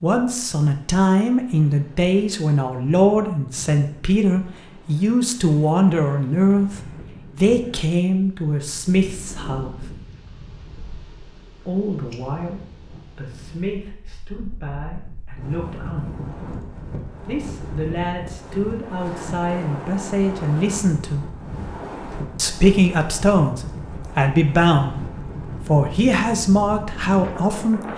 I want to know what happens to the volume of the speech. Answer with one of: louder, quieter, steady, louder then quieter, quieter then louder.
quieter then louder.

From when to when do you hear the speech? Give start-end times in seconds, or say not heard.
0.0-9.9, 11.7-16.1, 17.2-21.3, 22.4-27.8.